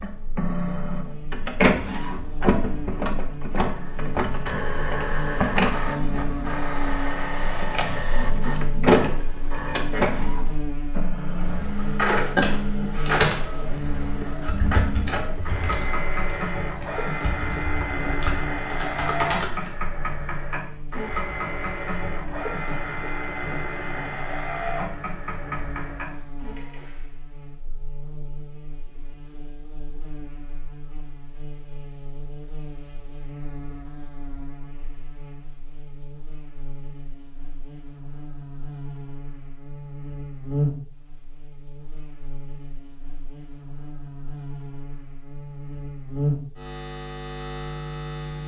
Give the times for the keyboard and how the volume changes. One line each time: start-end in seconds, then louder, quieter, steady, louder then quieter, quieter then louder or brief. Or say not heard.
11.2-19.7 quieter then louder.